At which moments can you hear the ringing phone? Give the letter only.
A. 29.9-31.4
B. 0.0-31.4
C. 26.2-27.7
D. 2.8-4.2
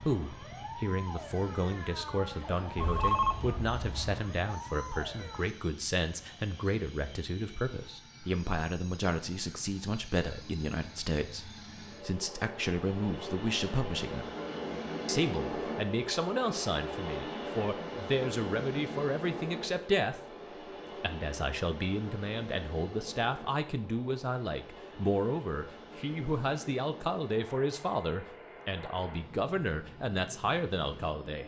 D.